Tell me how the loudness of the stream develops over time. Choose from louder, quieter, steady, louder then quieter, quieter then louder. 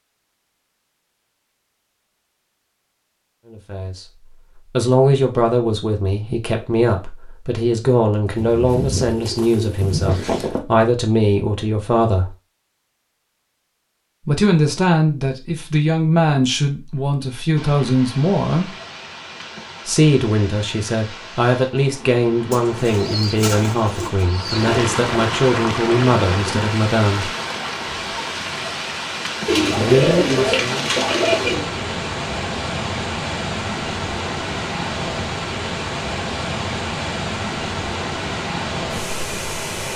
louder.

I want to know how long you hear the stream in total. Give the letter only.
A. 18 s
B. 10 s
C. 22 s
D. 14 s
C.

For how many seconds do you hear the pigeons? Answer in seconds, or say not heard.
7 s.